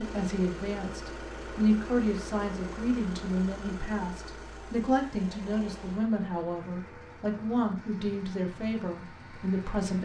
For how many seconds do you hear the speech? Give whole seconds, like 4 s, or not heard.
10 s.